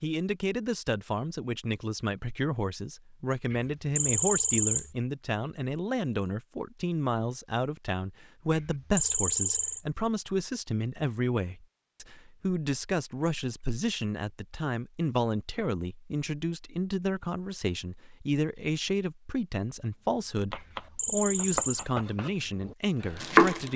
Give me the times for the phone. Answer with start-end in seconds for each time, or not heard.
3.5-4.9, 8.5-9.8, 20.6-21.9.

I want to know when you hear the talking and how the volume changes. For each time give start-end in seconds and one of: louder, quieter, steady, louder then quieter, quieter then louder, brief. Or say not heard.
0.0-23.7 steady.